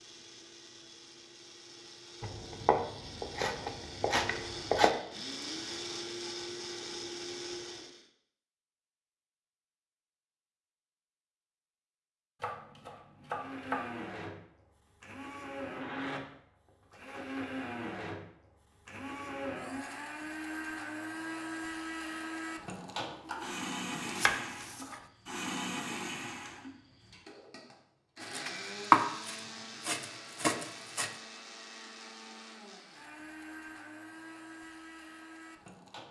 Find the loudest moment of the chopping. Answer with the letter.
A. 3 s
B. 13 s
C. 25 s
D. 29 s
D.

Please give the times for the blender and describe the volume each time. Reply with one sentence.
The blender can be heard from 0.0 to 8.1 s, getting louder; and from 13.2 to 36.0 s, getting quieter.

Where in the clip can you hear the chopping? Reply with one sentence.
The chopping can be heard from 2.2 to 4.9 s, from 12.4 to 14.0 s, from 23.9 to 25.0 s and from 28.4 to 31.1 s.